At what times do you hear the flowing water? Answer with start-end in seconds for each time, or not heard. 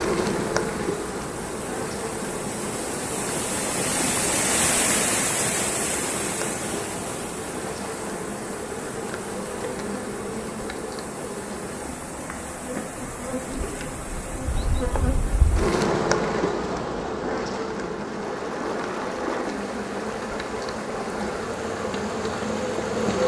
0.0-23.2.